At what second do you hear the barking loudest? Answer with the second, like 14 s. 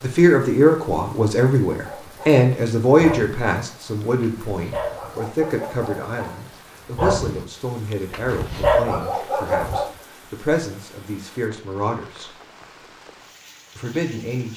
9 s.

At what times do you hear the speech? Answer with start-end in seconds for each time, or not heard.
0.0-12.3, 13.8-14.5.